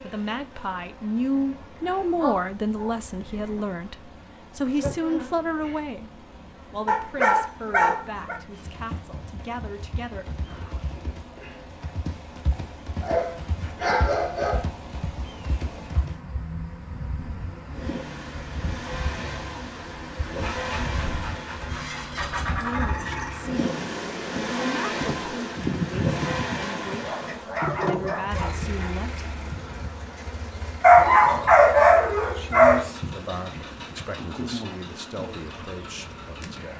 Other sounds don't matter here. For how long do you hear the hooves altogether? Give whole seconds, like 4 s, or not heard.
8 s.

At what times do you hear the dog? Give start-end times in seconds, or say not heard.
1.9-3.6, 6.8-8.3, 13.0-14.7, 20.4-22.9, 26.9-28.9, 30.8-32.9.